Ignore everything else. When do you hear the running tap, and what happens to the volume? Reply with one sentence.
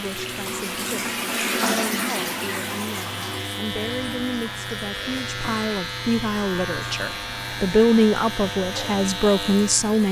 The running tap can be heard from 0.0 to 10.0 s, getting quieter.